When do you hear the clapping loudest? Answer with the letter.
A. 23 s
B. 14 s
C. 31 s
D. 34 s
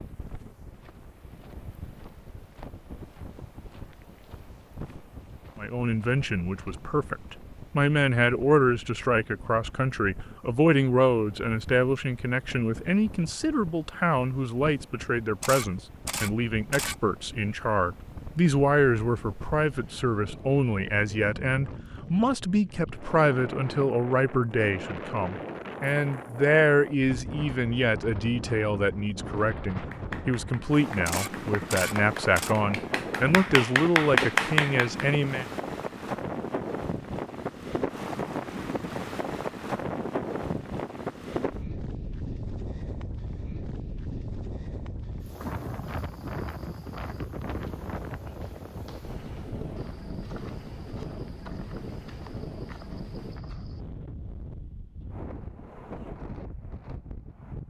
D.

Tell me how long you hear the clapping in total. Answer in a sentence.
The clapping can be heard for 5 seconds in total.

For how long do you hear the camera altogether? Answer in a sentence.
You can hear the camera for 3 seconds altogether.